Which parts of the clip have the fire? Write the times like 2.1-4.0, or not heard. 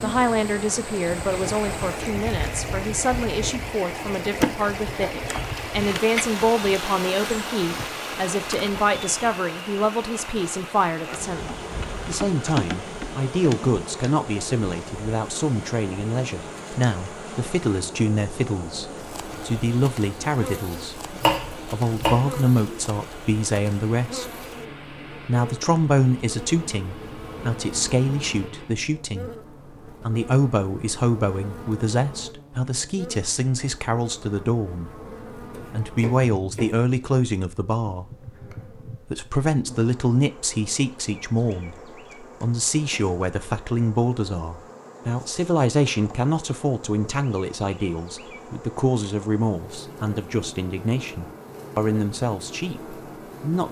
not heard.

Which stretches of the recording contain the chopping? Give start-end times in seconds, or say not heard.
21.1-22.8, 35.5-36.8.